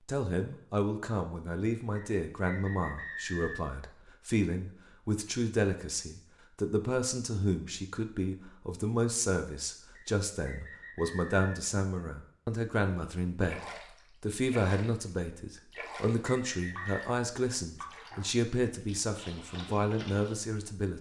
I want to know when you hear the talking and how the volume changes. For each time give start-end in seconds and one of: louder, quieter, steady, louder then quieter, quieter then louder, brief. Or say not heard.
0.1-20.9 steady.